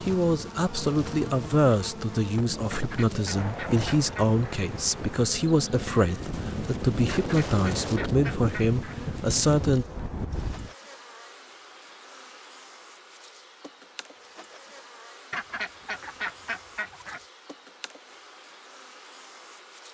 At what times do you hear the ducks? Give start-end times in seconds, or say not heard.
2.7-4.4, 7.0-8.9, 15.3-17.2.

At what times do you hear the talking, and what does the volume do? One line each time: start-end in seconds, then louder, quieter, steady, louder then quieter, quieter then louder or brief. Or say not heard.
0.0-9.8 steady.